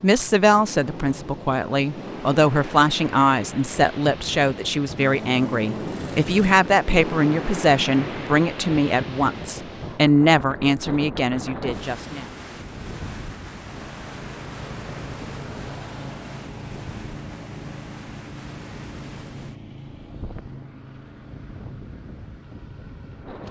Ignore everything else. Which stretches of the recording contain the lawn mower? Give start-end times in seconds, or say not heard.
5.0-6.7, 13.6-23.4.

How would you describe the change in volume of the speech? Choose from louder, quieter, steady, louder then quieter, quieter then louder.
steady.